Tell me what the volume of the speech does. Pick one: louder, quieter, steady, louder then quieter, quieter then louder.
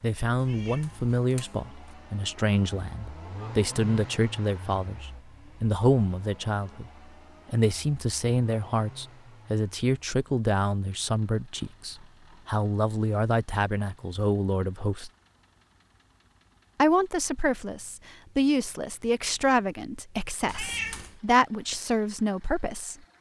steady.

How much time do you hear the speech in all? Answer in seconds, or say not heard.
21 s.